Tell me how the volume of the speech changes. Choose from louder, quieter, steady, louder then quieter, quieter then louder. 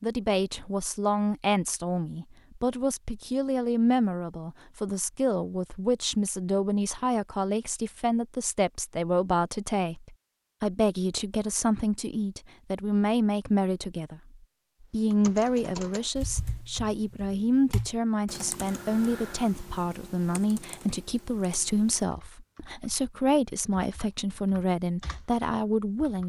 steady.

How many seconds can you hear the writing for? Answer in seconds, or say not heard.
not heard.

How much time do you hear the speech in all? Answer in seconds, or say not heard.
26 s.